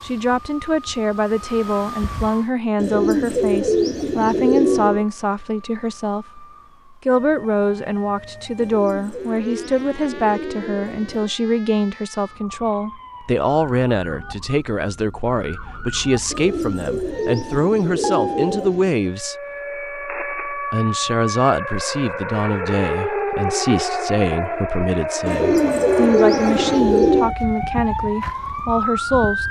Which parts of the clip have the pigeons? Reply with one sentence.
The pigeons can be heard from 2.8 to 5.0 s, from 8.6 to 11.3 s, from 16.3 to 19.0 s and from 25.2 to 27.4 s.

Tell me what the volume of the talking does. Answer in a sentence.
The volume of the talking stays about the same.